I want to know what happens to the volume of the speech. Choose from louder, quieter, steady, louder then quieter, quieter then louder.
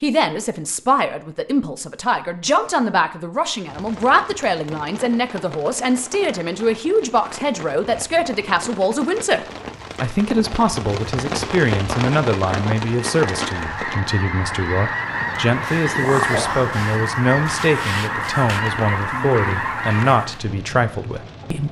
steady.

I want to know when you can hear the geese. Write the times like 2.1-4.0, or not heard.
12.9-20.4.